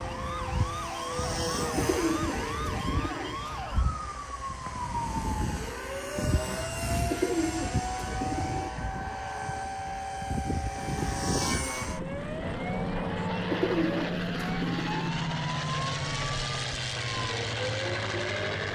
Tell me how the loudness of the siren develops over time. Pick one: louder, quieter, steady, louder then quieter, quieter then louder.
steady.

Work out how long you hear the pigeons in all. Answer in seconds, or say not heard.
5 s.